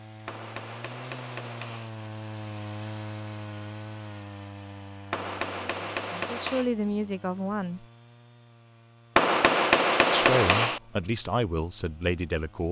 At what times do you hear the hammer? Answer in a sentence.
You can hear the hammer from 0.2 to 1.9 s, from 5.1 to 6.7 s and from 9.2 to 10.8 s.